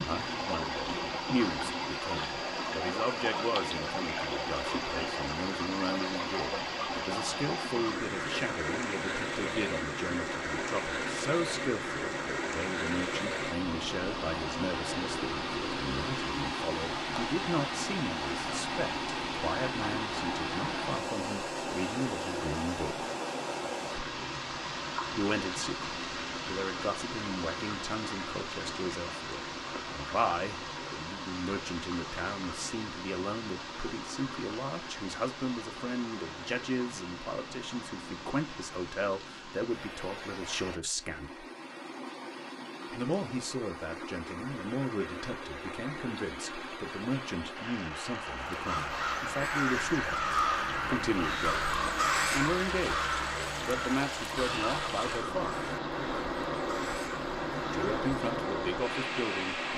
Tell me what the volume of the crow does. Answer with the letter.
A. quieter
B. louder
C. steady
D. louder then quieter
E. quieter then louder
A.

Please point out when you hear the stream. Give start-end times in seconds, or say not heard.
0.0-59.7.